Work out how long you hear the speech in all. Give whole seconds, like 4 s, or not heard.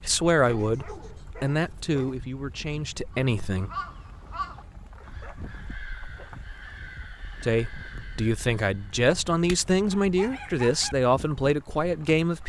9 s.